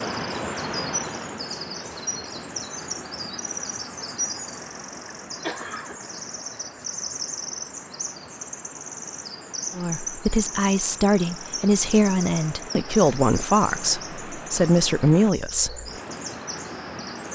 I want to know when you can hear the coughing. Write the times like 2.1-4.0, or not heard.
5.4-6.1.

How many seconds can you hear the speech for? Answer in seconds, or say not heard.
6 s.